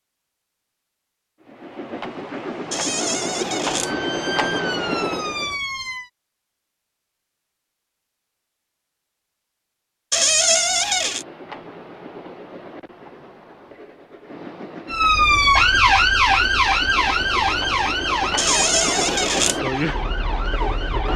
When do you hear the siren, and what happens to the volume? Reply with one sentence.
You can hear the siren briefly from 3.8 to 6.1 s; and from 14.9 to 21.1 s, getting quieter.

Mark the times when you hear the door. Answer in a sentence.
You can hear the door from 2.7 to 3.9 s, from 10.1 to 11.2 s and from 18.4 to 19.6 s.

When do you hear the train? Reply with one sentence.
The train can be heard from 1.4 to 5.6 s and from 10.7 to 21.1 s.